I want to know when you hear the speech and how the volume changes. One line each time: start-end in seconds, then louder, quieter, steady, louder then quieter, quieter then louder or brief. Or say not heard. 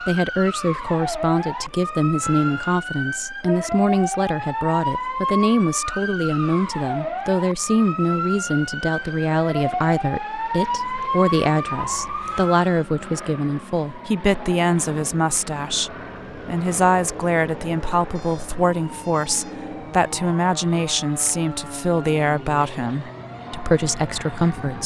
0.0-24.8 steady.